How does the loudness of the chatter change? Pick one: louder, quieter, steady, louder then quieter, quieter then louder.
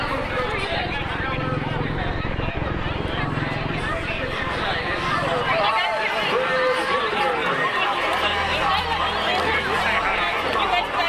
louder.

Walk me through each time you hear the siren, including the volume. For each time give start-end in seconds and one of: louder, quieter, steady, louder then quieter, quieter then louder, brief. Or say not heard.
0.0-11.0 quieter.